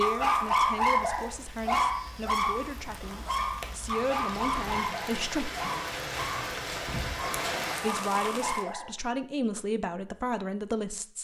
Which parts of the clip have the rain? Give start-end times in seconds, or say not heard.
0.0-8.7.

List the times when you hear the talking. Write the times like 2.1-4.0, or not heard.
0.0-5.5, 7.8-11.1.